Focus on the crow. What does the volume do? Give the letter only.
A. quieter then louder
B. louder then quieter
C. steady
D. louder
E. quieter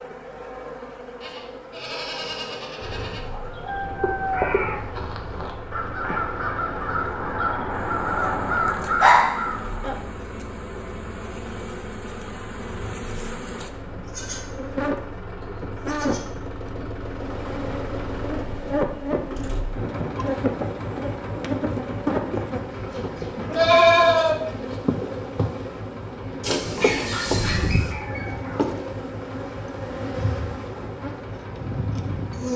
A.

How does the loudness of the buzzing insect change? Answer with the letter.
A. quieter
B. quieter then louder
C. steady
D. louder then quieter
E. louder
E.